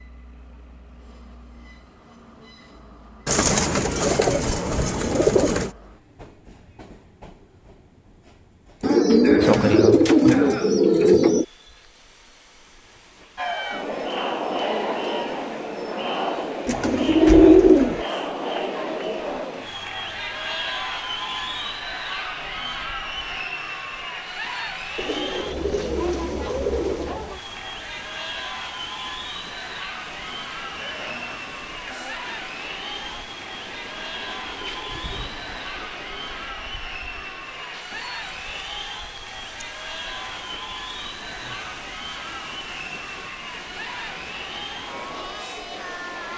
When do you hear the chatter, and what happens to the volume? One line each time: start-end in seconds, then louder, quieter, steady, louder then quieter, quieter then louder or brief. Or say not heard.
13.3-46.3 quieter.